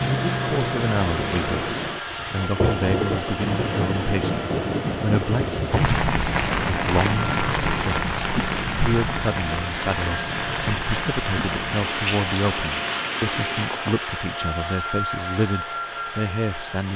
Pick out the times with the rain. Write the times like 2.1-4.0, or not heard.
0.0-14.1.